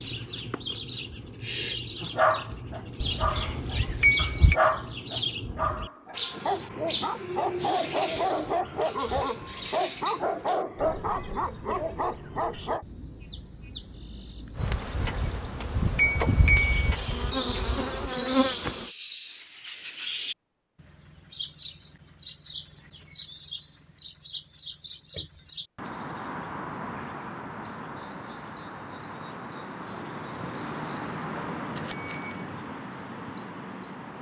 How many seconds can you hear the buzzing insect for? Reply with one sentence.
The buzzing insect can be heard for 4 seconds in total.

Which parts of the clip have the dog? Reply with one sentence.
You can hear the dog from 2.0 to 12.8 s.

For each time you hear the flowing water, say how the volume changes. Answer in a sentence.
You can't hear the flowing water here.